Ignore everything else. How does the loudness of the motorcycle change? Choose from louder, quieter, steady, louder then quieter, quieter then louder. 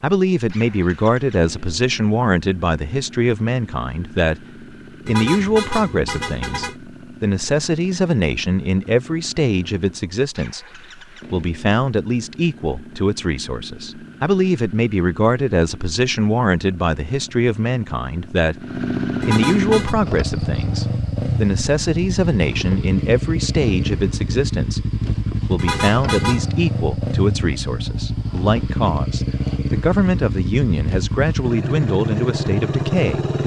louder.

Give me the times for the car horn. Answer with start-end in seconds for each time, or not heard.
5.0-6.8, 19.2-19.9, 25.6-26.5.